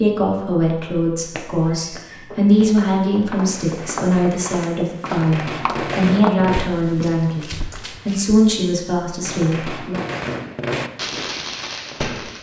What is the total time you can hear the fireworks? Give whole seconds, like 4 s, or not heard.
8 s.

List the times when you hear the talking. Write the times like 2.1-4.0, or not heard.
0.0-10.0.